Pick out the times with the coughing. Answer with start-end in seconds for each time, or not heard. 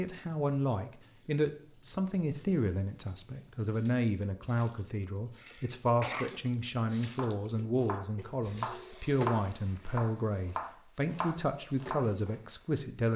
5.4-6.5.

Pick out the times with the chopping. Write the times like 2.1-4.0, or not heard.
7.2-12.3.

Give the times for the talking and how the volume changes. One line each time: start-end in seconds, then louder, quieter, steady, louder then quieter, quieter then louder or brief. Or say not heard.
0.0-13.1 steady.